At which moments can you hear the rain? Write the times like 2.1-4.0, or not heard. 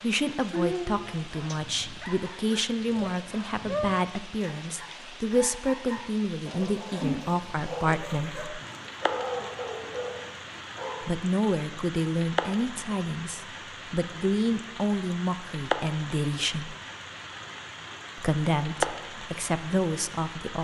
0.0-20.6.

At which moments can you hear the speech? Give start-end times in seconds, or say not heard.
0.0-8.6, 11.0-16.8, 18.1-20.6.